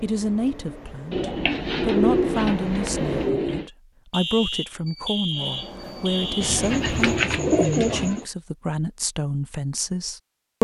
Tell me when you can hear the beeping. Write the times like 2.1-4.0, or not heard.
4.1-6.7.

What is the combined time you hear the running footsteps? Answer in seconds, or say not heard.
not heard.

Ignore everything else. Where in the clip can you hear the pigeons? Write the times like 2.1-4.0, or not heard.
1.1-3.6, 6.4-8.2.